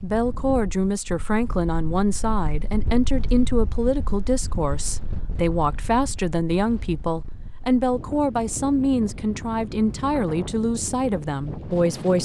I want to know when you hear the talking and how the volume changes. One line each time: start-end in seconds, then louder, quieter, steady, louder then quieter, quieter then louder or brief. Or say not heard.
0.0-12.2 steady.